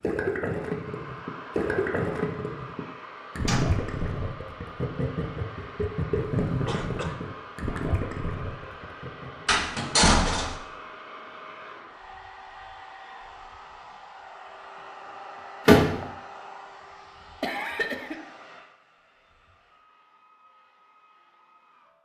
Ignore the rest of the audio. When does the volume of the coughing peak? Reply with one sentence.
The loudest moment of the coughing is at 18 seconds.